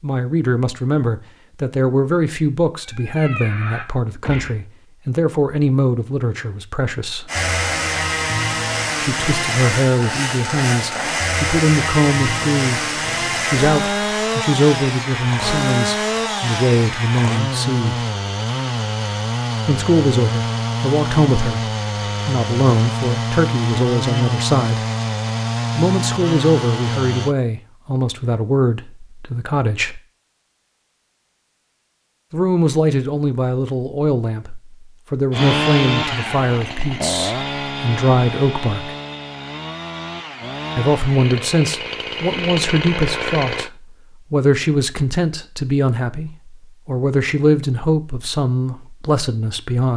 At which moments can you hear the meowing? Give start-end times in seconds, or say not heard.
2.8-4.6.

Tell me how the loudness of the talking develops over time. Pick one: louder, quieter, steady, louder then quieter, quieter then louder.
steady.